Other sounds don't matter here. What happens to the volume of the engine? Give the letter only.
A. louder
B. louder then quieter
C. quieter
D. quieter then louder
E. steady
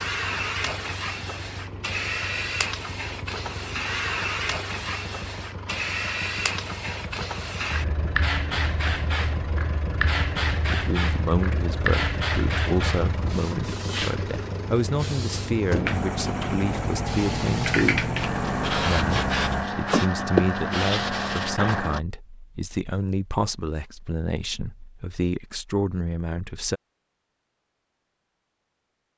A.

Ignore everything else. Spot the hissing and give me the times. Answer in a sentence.
The hissing can be heard from 0.0 to 22.0 s.